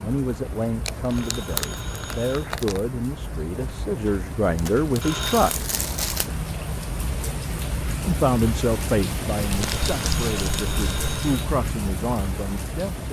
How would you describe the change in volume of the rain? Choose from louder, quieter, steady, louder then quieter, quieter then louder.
louder.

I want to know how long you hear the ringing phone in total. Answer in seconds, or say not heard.
4 s.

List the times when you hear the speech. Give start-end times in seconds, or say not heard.
0.0-5.7, 8.0-13.0.